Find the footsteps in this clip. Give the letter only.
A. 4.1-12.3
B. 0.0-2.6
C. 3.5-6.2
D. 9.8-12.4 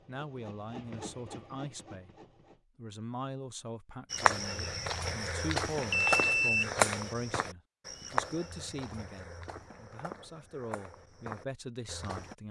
A.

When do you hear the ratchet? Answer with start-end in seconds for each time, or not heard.
not heard.